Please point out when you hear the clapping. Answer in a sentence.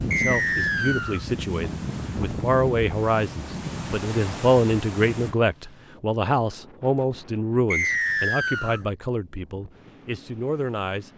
You can't hear the clapping here.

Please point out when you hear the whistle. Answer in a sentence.
The whistle can be heard from 0.1 to 1.2 s and from 7.7 to 8.8 s.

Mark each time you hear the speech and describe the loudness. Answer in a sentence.
The speech can be heard from 0.0 to 11.1 s, getting louder then quieter.